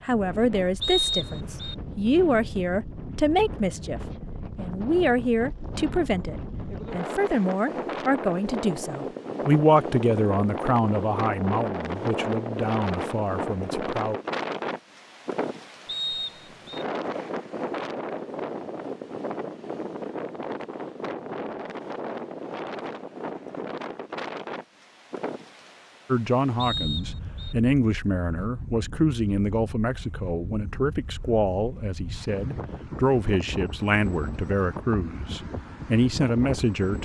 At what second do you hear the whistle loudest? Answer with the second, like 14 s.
1 s.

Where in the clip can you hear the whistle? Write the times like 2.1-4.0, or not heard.
0.8-1.8, 15.8-16.9, 26.6-27.6.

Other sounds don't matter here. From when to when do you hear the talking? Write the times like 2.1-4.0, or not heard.
0.0-14.2, 26.1-37.0.